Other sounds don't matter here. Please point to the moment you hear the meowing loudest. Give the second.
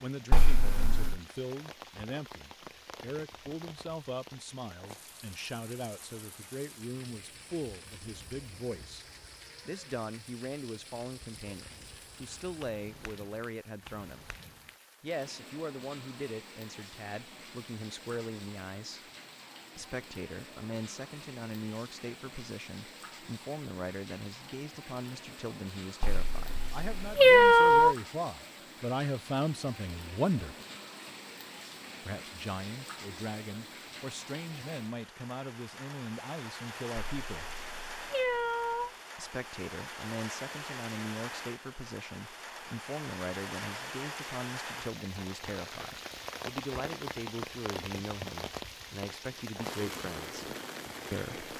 27 s.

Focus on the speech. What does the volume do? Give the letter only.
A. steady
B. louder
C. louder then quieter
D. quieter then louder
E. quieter
A.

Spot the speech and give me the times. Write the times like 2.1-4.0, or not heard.
0.0-9.1, 9.7-14.2, 15.0-19.1, 19.8-30.6, 32.0-37.5, 39.1-51.5.